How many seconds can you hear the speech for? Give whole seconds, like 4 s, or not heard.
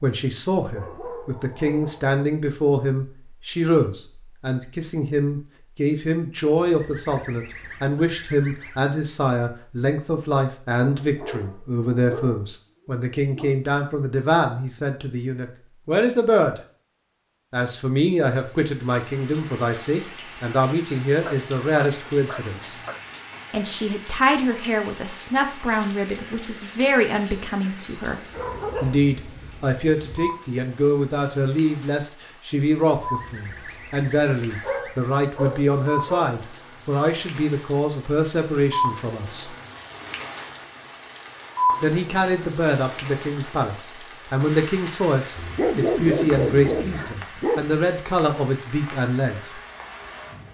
45 s.